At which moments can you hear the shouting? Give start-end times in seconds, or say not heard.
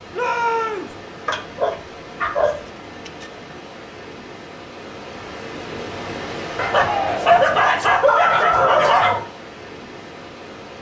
0.1-0.9, 6.7-7.4.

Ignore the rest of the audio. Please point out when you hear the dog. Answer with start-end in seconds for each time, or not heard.
1.2-3.2, 6.5-9.2.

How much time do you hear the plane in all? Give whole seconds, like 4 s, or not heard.
not heard.